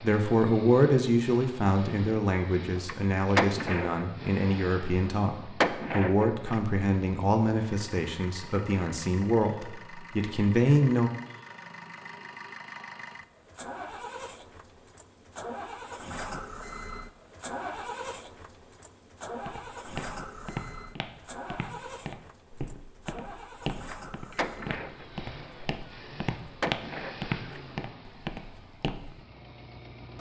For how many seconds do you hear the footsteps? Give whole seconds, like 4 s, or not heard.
10 s.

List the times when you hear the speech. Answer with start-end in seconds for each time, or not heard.
0.0-11.1.